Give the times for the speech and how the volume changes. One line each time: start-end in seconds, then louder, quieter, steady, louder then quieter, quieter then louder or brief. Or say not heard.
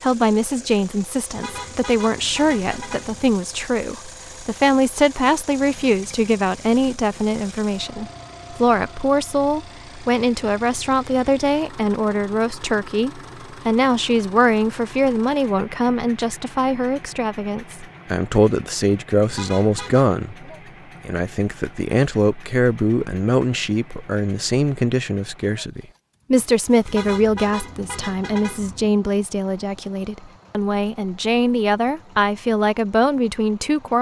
0.0-33.9 steady.